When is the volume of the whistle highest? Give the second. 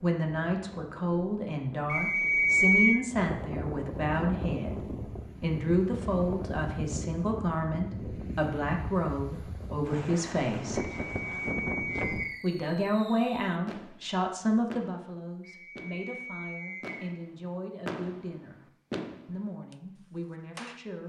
3 s.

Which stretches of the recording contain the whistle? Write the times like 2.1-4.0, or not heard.
1.9-3.0, 10.8-12.4, 15.4-17.0.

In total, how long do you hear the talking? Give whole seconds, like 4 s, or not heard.
18 s.